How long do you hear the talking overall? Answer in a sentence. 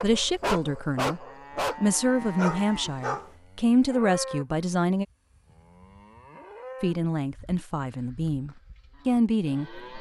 The talking can be heard for 8 seconds in total.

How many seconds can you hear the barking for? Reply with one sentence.
The barking can be heard for 3 seconds in total.